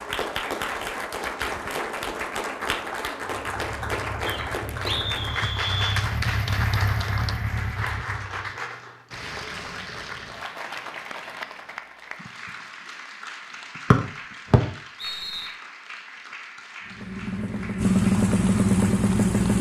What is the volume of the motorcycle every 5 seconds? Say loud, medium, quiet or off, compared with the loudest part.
quiet, medium, off, loud.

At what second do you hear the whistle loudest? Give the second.
14 s.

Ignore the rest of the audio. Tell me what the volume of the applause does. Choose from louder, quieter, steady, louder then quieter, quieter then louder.
quieter.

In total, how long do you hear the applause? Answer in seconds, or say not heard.
19 s.